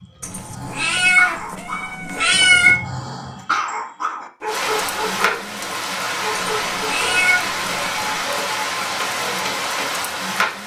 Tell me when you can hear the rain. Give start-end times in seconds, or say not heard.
4.5-10.6.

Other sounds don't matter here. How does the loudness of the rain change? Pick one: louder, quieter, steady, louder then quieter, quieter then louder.
steady.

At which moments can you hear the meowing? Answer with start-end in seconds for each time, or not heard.
0.2-2.8, 6.3-8.2.